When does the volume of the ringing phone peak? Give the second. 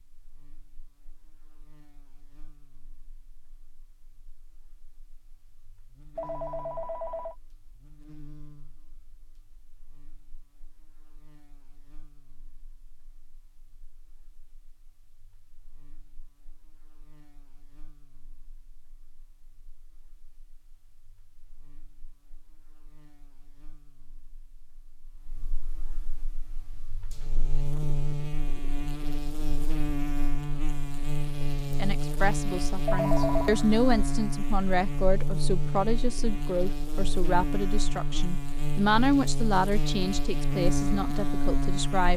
33 s.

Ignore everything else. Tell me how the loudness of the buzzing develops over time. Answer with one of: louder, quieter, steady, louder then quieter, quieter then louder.
quieter then louder.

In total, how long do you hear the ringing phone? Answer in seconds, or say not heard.
2 s.